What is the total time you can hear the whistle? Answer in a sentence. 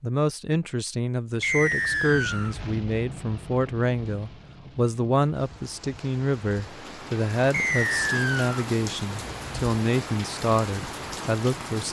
You can hear the whistle for 2 seconds altogether.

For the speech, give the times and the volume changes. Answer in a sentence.
The speech can be heard from 0.0 to 11.8 s, at a steady volume.